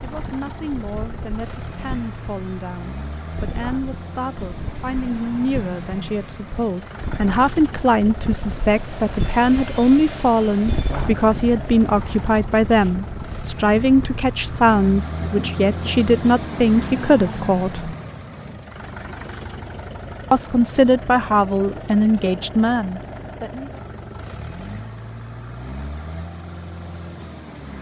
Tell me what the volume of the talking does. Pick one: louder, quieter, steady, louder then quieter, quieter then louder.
louder.